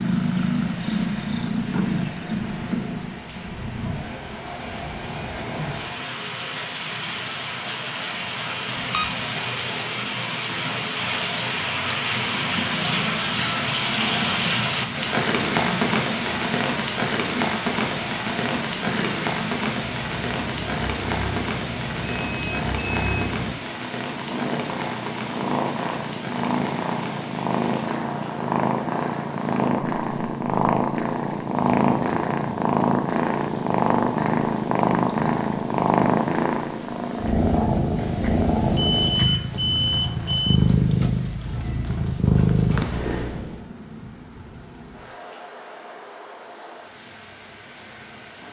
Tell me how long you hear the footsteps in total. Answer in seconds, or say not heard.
not heard.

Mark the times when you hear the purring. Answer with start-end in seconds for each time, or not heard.
0.0-3.2, 12.2-43.6.